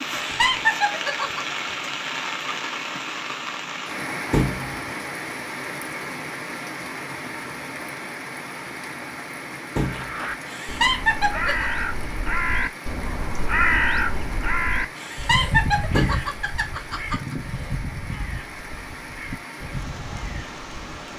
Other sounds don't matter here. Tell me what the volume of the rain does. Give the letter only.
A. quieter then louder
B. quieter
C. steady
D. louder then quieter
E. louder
B.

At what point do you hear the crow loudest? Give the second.
14 s.